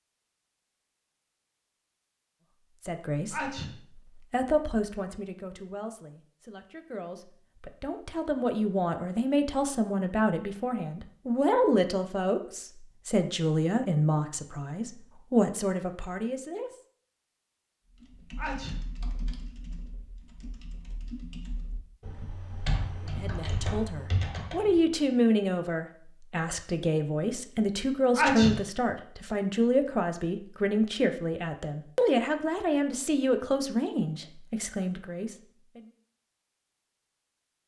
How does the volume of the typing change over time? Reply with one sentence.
The volume of the typing goes down, then up.